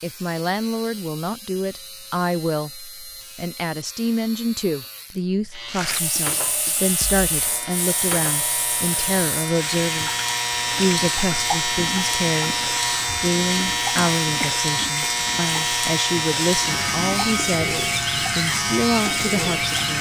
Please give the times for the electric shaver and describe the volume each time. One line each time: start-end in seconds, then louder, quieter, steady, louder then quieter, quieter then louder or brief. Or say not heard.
0.0-19.9 louder.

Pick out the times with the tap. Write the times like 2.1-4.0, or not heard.
5.7-19.9.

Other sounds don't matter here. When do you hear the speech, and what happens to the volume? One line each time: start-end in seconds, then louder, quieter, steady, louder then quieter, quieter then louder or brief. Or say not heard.
0.0-19.9 steady.